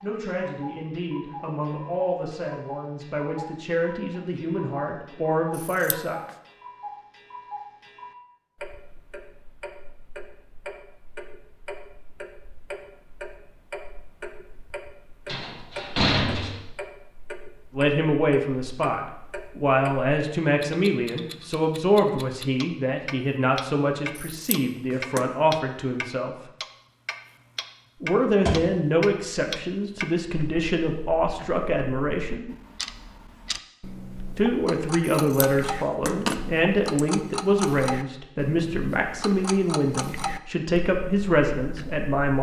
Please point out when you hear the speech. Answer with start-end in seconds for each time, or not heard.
0.0-6.2, 17.8-26.4, 28.0-32.5, 34.4-42.3.